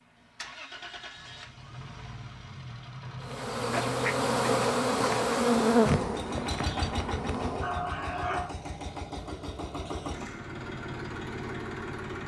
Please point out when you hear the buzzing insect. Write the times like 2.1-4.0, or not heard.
3.2-7.8.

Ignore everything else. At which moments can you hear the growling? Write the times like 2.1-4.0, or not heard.
7.3-8.6.